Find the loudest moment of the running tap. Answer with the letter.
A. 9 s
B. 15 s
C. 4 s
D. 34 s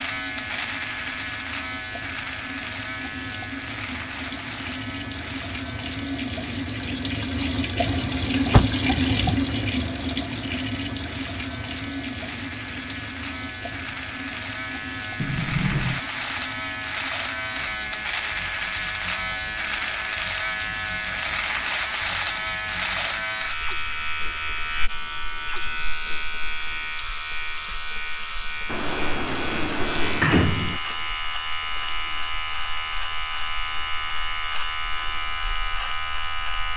A.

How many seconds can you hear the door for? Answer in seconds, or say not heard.
4 s.